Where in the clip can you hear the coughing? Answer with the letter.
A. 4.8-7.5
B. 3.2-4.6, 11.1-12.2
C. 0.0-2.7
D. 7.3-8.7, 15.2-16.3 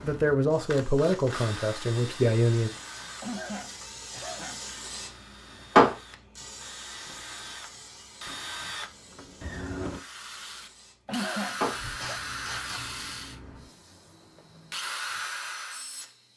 B.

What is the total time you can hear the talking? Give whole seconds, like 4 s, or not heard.
3 s.